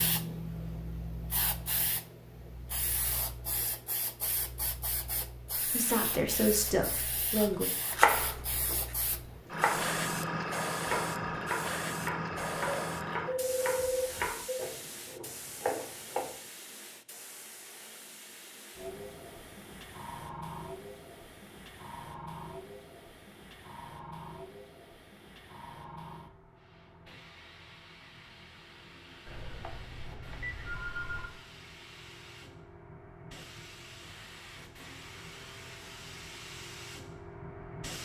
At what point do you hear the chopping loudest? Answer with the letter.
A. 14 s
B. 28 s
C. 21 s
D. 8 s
D.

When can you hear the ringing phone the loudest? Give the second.
14 s.